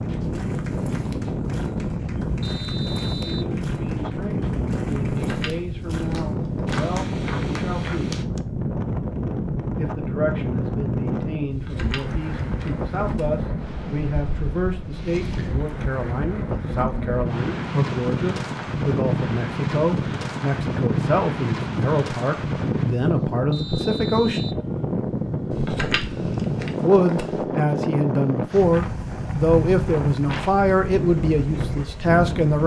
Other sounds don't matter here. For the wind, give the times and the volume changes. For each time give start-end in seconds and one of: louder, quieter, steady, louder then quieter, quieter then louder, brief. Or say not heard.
0.0-32.6 steady.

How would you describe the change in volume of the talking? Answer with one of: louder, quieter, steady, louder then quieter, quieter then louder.
louder.